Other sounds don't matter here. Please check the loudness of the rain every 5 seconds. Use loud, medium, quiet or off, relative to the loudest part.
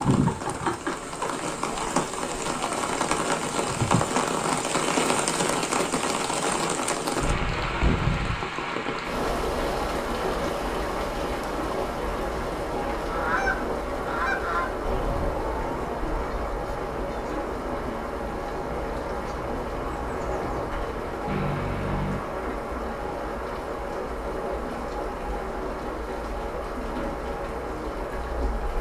loud, loud, loud, medium, medium, medium.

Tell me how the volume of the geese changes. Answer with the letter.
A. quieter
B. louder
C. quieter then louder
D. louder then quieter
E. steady
A.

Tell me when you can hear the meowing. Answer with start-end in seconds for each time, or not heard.
21.2-22.2.